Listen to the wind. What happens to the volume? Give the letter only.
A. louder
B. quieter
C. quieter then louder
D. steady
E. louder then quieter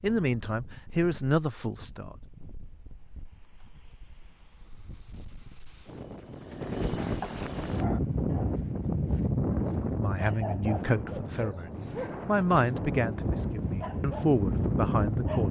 A.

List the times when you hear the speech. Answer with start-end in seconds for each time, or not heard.
0.0-2.1, 9.8-15.4.